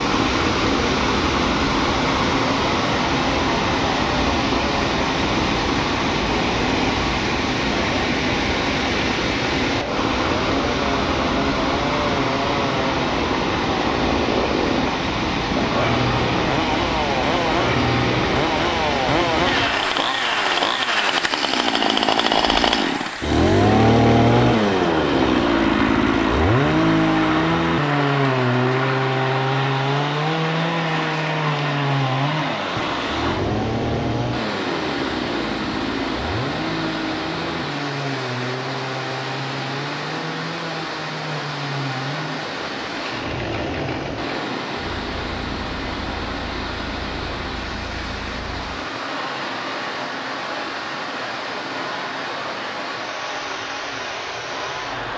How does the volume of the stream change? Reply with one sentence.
The loudness of the stream goes down.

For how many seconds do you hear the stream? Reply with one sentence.
You can hear the stream for 55 seconds altogether.